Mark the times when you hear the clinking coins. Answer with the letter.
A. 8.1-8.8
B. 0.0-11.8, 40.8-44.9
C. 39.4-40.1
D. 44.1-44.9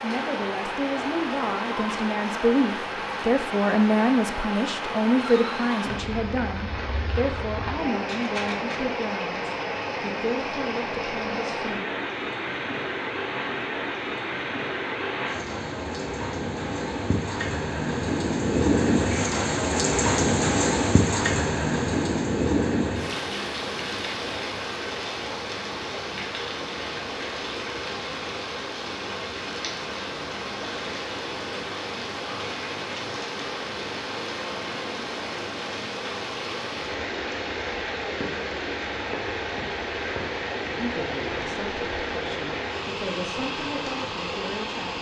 A.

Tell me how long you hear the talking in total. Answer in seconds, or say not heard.
16 s.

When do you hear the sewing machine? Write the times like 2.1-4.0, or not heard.
not heard.